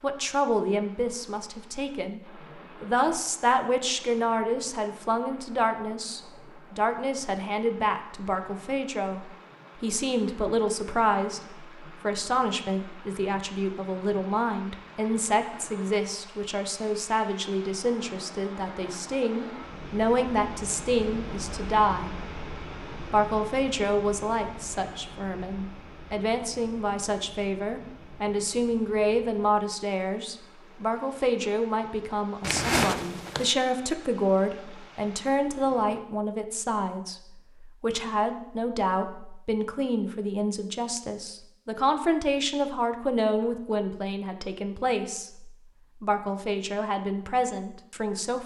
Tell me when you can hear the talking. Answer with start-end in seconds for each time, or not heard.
0.0-2.2, 2.8-22.2, 23.1-48.4.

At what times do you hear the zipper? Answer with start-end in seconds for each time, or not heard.
32.4-33.5.